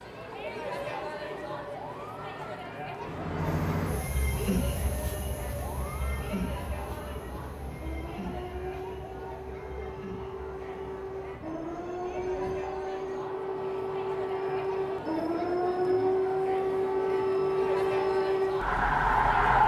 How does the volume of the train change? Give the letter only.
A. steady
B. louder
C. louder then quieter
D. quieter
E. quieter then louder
E.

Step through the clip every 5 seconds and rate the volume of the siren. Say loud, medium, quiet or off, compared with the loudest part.
quiet, quiet, medium, loud.